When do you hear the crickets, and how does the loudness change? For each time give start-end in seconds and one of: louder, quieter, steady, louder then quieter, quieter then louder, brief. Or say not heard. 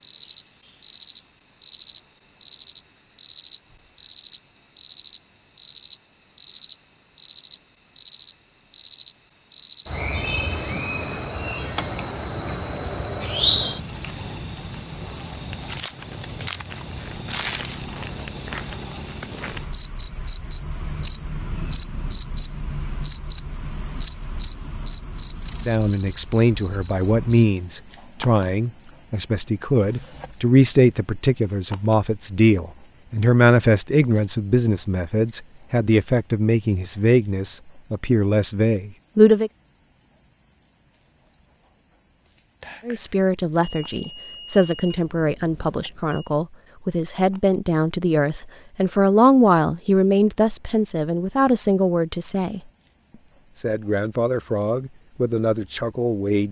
0.0-56.4 quieter.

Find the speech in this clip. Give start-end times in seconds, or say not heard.
25.6-39.5, 42.9-52.6, 53.5-56.4.